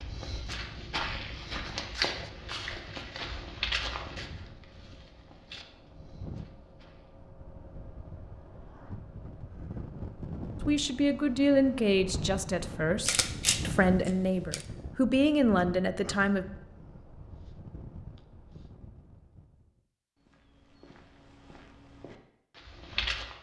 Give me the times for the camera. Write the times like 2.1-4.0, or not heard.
13.1-14.7.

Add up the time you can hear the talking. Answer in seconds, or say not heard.
6 s.